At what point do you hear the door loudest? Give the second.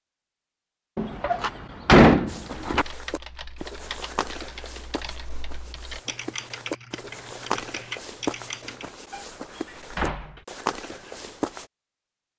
2 s.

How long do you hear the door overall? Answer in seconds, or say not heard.
3 s.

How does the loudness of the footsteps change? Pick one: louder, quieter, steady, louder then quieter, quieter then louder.
quieter then louder.